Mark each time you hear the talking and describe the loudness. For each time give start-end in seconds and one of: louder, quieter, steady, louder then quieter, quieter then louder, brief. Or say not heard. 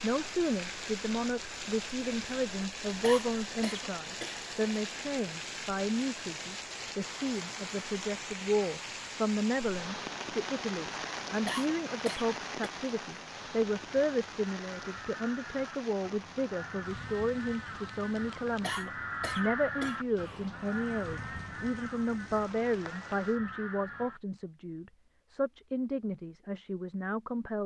0.0-27.6 steady.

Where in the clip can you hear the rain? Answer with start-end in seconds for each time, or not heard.
0.0-23.4.